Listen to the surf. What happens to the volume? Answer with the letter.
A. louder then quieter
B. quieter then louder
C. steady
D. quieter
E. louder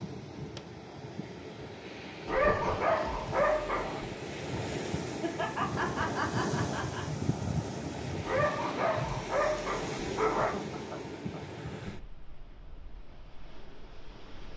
A.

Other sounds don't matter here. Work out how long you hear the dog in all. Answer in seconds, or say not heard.
4 s.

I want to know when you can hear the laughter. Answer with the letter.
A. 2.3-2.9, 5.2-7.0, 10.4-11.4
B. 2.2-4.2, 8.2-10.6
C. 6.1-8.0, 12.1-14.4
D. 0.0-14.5
A.